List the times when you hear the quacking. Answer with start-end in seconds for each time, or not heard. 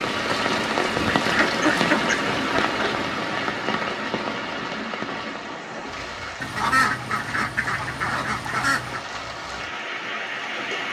0.9-3.0, 6.4-9.1.